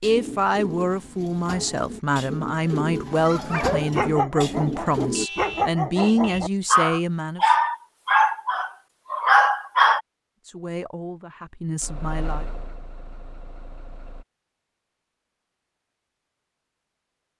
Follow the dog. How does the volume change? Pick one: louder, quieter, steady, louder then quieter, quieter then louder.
louder.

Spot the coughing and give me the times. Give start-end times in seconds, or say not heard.
not heard.